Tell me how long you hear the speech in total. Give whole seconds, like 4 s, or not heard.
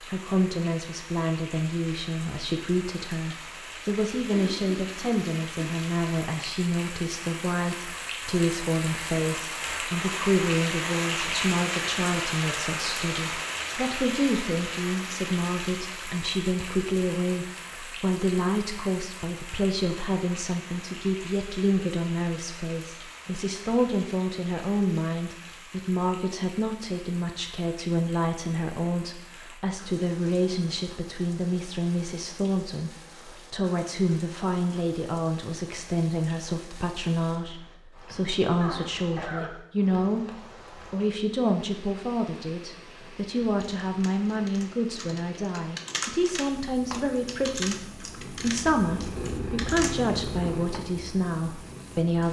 51 s.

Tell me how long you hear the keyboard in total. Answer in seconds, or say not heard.
7 s.